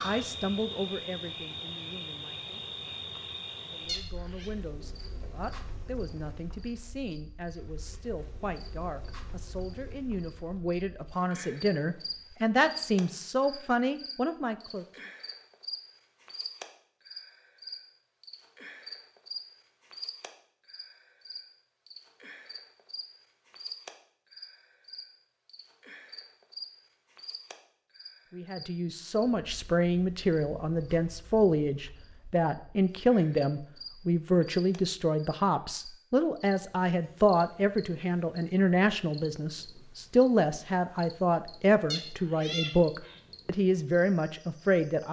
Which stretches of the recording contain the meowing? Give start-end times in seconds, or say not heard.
3.9-4.5, 41.9-43.2.